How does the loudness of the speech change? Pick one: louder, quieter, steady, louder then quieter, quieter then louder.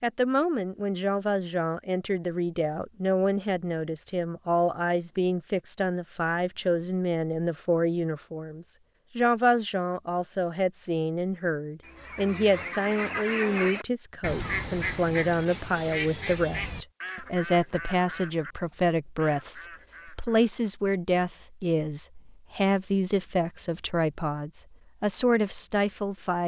steady.